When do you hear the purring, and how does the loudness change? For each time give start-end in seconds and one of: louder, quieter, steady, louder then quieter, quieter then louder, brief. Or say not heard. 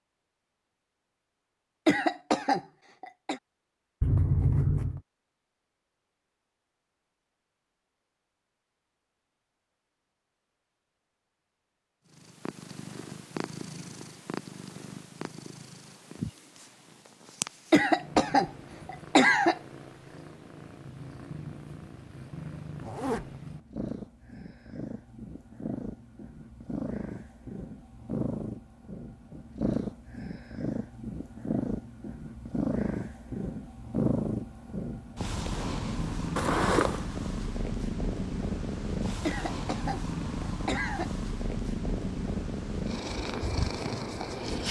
12.1-44.6 louder.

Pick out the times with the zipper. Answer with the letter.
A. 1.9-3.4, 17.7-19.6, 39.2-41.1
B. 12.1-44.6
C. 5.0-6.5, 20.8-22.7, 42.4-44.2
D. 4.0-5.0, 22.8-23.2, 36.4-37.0
D.